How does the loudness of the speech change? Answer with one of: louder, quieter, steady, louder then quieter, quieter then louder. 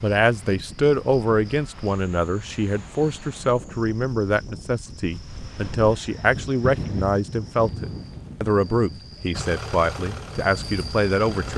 steady.